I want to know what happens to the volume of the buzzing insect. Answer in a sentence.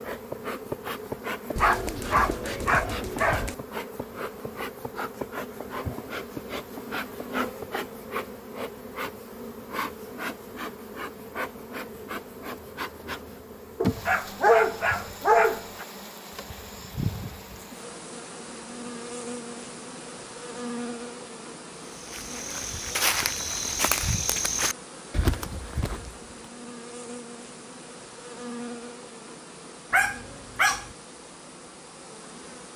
The loudness of the buzzing insect goes down.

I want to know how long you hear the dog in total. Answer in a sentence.
You can hear the dog for 5 seconds altogether.